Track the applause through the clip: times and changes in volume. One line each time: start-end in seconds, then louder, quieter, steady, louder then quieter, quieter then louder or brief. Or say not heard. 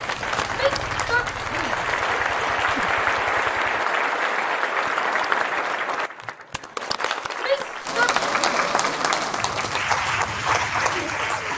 0.0-11.5 steady.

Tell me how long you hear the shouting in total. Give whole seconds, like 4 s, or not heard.
3 s.